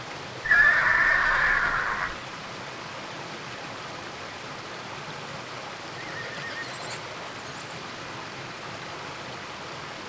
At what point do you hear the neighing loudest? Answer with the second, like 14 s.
1 s.